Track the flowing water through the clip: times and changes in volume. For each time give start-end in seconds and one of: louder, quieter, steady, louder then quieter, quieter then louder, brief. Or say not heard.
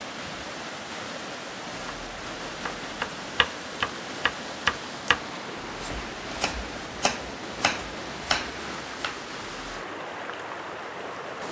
0.0-11.4 steady.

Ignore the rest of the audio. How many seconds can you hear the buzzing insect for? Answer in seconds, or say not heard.
not heard.